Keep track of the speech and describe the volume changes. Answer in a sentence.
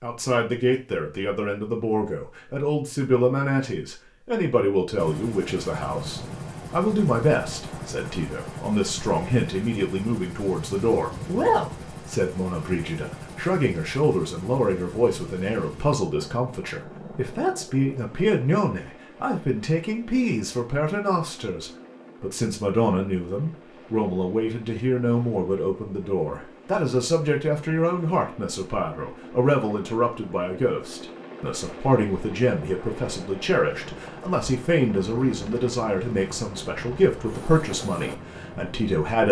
The volume of the speech stays about the same.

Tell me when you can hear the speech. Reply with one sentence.
The speech can be heard from 0.0 to 39.2 s.